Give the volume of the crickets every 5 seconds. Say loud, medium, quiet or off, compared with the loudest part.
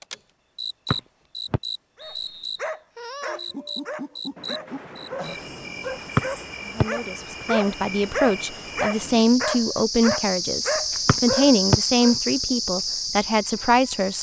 medium, medium, loud.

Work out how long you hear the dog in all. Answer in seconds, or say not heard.
10 s.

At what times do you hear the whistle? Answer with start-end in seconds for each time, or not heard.
0.9-2.6, 6.2-6.8, 11.1-11.8.